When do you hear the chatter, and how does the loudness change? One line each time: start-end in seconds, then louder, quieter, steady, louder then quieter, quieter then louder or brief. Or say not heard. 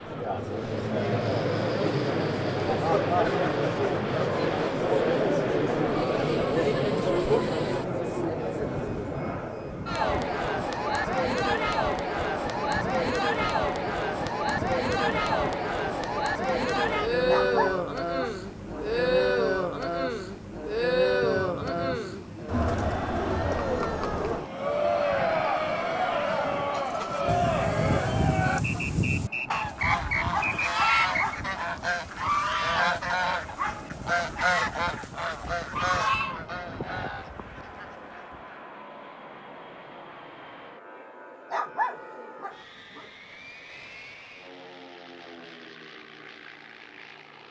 0.0-28.6 steady.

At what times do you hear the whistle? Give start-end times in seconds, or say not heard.
28.6-31.4.